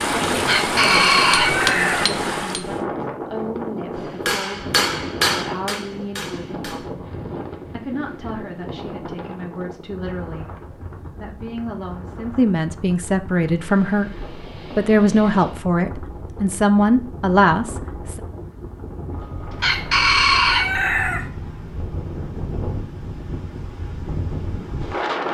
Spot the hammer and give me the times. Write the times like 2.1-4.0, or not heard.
0.0-2.8, 4.2-6.9.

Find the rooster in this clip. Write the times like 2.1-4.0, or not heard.
0.5-2.1, 19.6-21.2.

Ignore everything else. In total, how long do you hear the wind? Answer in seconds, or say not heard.
25 s.